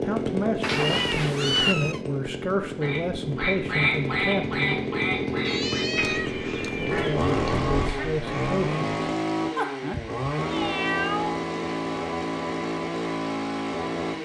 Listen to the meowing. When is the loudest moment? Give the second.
2 s.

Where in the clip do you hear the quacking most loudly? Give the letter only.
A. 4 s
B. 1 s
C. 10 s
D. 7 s
A.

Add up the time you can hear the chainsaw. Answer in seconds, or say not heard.
14 s.